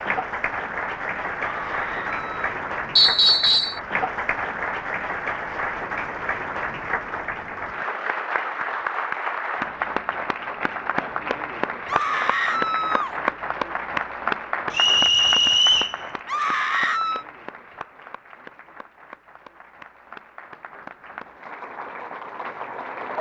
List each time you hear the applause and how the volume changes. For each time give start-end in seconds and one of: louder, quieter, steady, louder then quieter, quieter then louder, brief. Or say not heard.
0.0-23.1 quieter.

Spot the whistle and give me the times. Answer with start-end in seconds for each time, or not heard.
3.0-3.8, 14.7-15.9.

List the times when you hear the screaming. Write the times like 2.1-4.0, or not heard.
1.4-2.5, 11.8-13.2, 16.2-17.2.